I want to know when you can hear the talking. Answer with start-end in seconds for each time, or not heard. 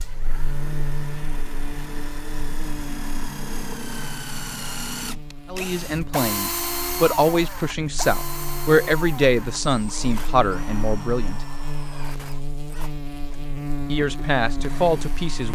5.5-11.4, 13.9-15.4.